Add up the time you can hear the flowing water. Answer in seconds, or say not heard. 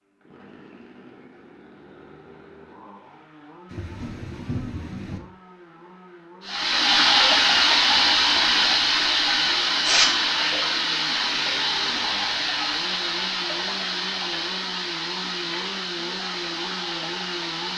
11 s.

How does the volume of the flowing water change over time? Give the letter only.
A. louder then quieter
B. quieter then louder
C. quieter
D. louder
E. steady
C.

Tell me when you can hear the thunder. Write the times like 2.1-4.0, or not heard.
3.7-5.2.